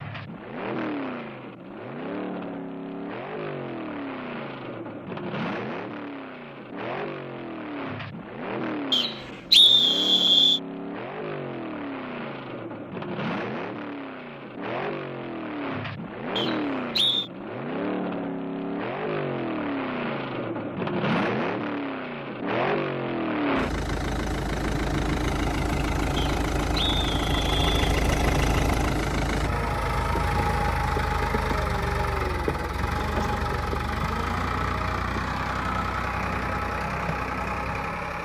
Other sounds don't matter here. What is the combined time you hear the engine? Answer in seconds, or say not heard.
38 s.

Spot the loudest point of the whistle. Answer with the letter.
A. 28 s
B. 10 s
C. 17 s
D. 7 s
B.